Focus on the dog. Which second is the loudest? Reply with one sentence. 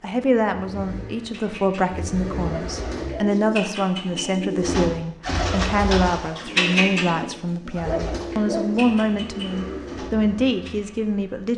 The loudest moment of the dog is at 8 seconds.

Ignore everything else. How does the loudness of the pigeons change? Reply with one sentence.
The loudness of the pigeons goes up, then down.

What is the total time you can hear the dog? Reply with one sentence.
You can hear the dog for 2 seconds altogether.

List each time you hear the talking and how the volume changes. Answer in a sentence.
You can hear the talking from 0.0 to 11.5 s, at a steady volume.